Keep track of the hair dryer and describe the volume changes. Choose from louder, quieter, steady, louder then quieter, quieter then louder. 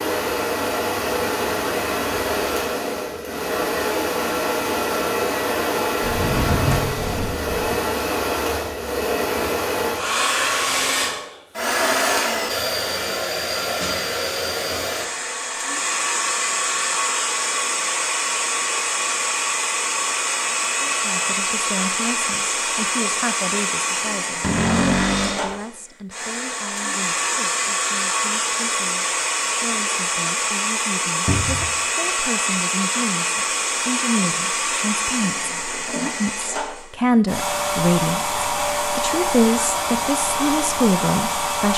steady.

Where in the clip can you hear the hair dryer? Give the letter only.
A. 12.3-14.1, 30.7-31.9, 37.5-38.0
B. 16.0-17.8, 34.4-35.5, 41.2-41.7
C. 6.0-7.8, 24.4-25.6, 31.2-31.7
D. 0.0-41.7
D.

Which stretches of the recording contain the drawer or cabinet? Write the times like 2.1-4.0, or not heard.
6.0-7.8, 24.4-25.6, 31.2-31.7.